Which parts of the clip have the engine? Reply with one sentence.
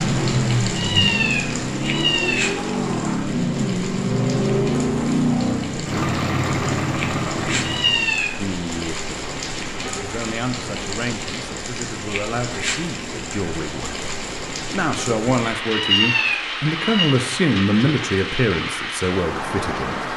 The engine can be heard from 0.0 to 8.1 s.